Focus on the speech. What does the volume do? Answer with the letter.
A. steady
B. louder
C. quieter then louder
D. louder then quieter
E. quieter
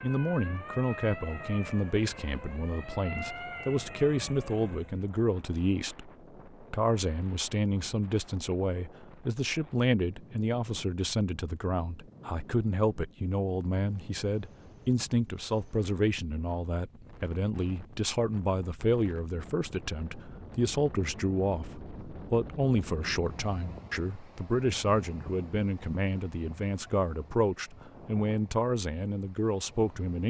A.